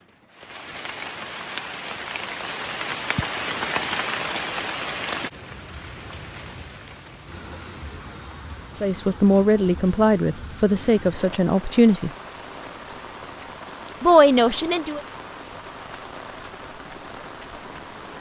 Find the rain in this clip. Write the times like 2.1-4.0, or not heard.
0.0-18.1.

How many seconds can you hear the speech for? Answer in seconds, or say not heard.
4 s.